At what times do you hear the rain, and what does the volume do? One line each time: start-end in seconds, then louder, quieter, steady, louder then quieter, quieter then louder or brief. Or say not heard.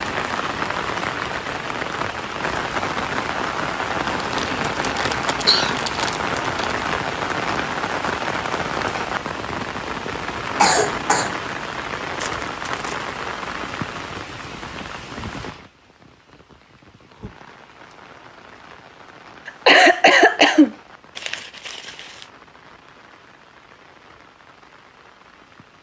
0.0-25.7 quieter.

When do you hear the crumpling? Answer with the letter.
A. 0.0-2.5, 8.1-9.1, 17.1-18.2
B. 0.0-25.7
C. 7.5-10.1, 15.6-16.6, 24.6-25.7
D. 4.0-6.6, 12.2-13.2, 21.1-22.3
D.